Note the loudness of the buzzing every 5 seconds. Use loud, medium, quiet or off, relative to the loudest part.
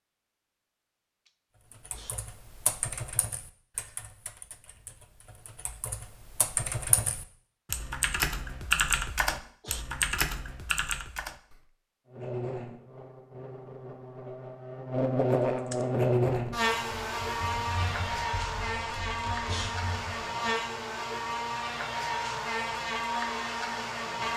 off, off, medium, loud, loud.